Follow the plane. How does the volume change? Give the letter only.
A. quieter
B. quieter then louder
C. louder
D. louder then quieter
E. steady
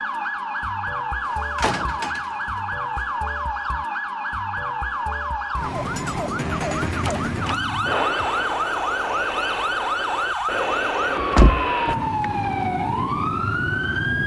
E.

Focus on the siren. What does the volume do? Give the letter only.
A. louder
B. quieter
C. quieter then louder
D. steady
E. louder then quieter
D.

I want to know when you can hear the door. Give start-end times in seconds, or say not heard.
1.2-2.4, 7.0-7.7, 11.2-12.3.